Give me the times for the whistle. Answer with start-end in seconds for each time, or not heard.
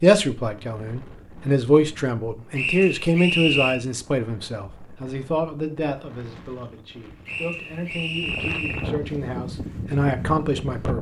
2.5-3.8, 7.2-8.9.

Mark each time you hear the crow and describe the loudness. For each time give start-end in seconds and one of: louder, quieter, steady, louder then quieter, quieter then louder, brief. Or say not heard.
not heard.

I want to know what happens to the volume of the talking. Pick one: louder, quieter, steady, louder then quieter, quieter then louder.
quieter then louder.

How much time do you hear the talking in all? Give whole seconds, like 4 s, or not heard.
11 s.